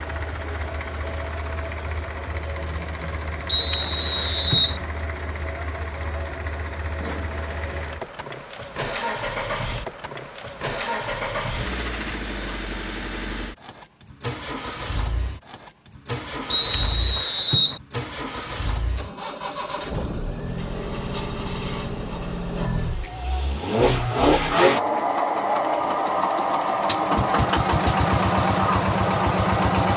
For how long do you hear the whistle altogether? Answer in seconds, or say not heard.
3 s.